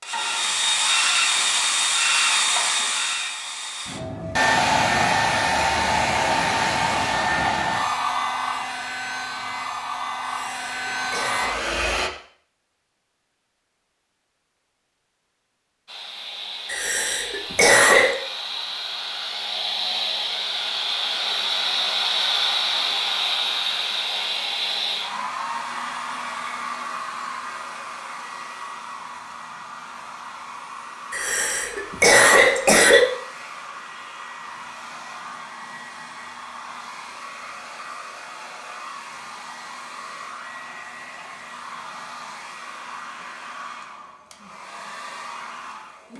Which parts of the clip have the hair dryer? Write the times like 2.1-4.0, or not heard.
0.0-12.1, 15.8-46.1.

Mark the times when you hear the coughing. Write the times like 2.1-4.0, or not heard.
10.2-11.5, 16.6-18.1, 31.1-33.0.